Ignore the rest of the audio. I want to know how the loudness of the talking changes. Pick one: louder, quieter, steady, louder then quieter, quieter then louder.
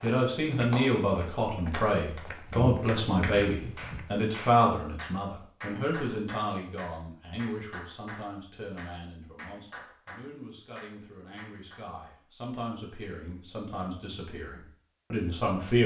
quieter then louder.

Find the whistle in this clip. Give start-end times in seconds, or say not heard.
not heard.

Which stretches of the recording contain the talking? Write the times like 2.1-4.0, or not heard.
0.0-15.8.